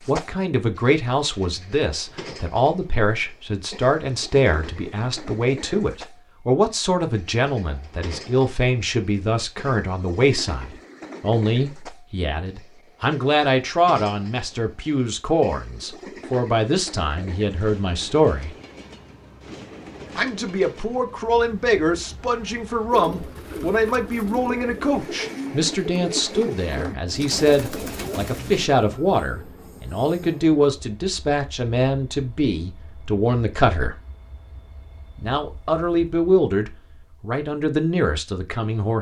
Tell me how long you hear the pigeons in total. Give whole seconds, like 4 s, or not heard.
6 s.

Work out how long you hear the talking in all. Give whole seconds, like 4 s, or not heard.
36 s.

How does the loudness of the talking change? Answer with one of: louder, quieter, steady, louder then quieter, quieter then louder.
steady.